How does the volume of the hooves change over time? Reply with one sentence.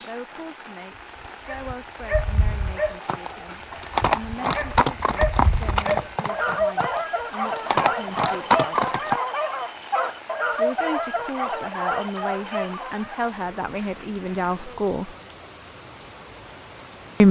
The volume of the hooves goes down, then up.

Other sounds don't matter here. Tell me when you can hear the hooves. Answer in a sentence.
You can hear the hooves from 3.0 to 9.2 s.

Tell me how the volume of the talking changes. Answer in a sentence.
The volume of the talking goes up.